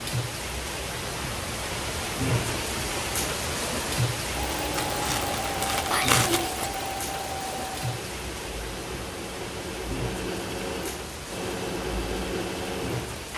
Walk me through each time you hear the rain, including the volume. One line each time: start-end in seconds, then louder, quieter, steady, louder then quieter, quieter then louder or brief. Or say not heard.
0.0-13.3 quieter.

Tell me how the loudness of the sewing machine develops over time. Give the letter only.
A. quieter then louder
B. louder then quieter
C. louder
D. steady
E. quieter
A.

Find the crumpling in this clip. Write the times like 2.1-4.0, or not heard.
4.8-6.7.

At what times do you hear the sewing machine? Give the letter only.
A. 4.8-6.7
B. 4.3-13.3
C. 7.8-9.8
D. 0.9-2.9
B.